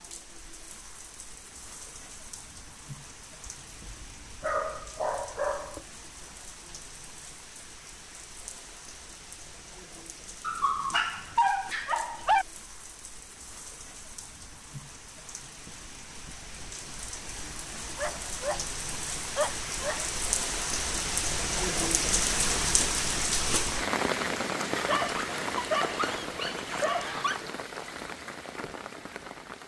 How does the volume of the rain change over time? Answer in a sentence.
The loudness of the rain goes up.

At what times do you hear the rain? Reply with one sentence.
You can hear the rain from 0.0 to 29.6 s.